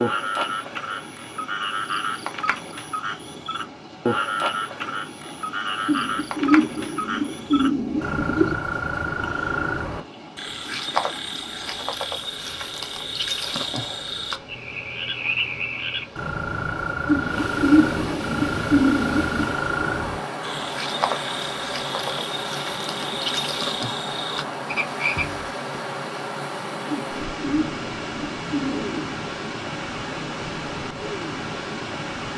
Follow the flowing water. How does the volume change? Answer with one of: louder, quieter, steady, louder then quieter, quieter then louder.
louder.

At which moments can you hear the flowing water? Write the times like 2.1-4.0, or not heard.
0.0-32.3.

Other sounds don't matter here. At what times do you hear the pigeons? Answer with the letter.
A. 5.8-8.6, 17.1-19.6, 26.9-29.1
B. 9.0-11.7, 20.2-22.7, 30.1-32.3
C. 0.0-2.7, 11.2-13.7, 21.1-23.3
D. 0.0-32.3
A.